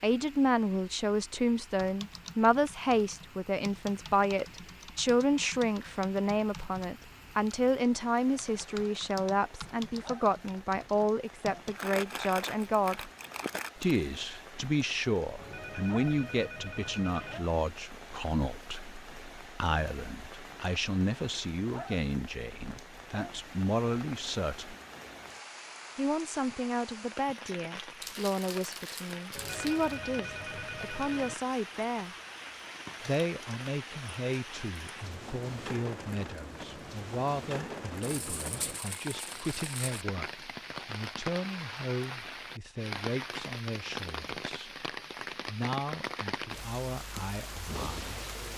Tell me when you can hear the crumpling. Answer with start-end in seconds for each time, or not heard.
11.7-14.0, 28.0-29.9, 38.0-40.0.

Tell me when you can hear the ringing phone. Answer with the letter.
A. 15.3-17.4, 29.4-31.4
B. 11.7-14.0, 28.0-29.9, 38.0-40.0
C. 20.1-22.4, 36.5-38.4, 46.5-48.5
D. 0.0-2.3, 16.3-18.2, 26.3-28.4
A.